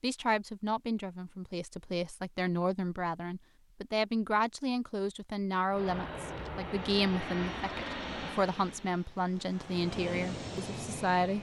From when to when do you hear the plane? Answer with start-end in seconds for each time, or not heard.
5.7-11.3.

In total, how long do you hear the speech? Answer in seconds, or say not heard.
11 s.